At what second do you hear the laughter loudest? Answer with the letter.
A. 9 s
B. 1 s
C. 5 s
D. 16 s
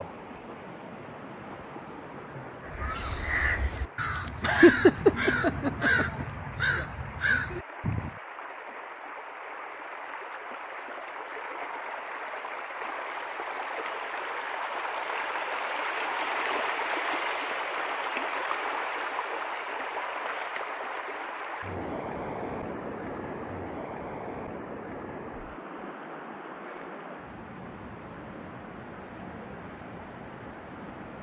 C.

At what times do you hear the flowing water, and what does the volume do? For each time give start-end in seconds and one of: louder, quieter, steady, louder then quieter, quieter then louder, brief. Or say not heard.
0.0-31.1 louder then quieter.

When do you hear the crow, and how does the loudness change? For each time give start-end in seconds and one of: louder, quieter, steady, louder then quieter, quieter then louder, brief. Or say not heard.
2.6-8.2 steady.